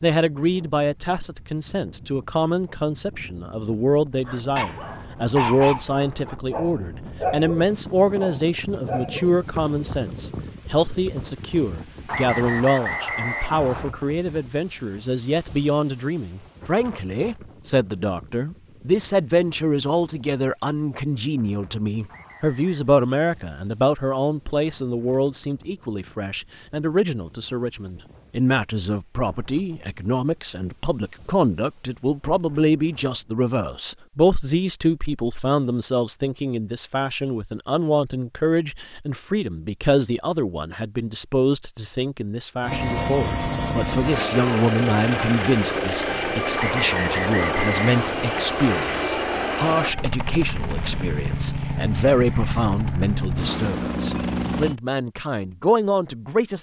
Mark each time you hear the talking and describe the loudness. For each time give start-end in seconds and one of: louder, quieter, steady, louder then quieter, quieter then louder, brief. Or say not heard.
0.0-56.5 steady.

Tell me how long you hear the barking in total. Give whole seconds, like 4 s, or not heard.
5 s.